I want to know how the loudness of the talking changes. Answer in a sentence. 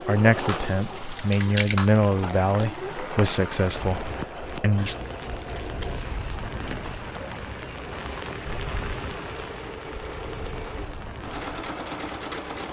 The loudness of the talking goes up, then down.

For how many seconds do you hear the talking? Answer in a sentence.
The talking can be heard for 5 seconds in total.